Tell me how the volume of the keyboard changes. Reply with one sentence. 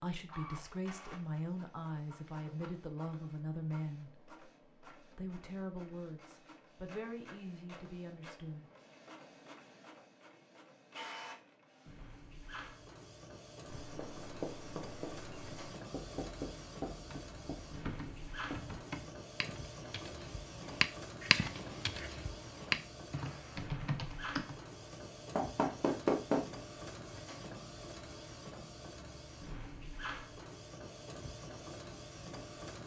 The volume of the keyboard goes up, then down.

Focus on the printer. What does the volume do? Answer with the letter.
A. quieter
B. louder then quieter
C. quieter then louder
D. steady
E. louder
E.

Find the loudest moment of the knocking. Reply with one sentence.
The loudest moment of the knocking is at 26 seconds.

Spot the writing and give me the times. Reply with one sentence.
You can hear the writing from 13.7 to 18.8 s.